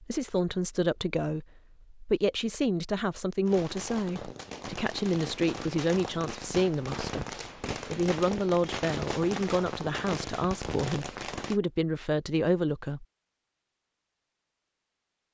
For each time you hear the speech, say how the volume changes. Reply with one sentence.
The speech can be heard from 0.0 to 13.1 s, at a steady volume.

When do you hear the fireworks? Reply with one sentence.
The fireworks can be heard from 3.5 to 11.6 s.